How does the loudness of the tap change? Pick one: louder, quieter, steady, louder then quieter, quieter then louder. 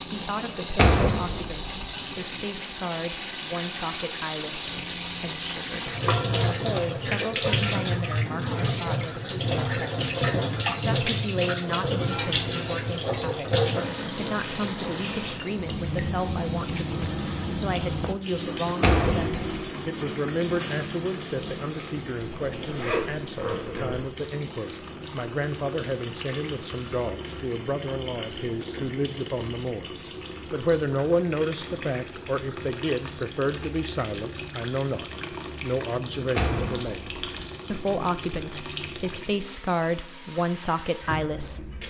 quieter.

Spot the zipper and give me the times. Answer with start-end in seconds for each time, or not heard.
22.4-24.1.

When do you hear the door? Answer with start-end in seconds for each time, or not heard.
0.8-1.7, 18.8-19.5, 36.4-37.2.